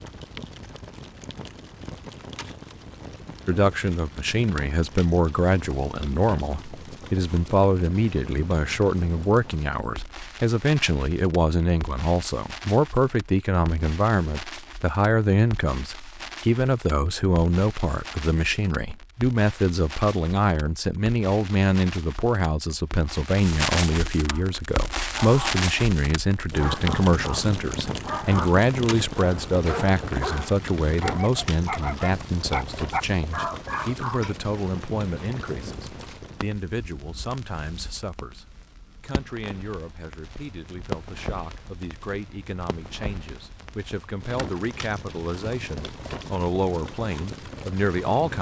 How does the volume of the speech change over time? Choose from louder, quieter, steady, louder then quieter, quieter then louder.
quieter.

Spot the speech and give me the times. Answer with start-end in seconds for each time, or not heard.
3.5-48.3.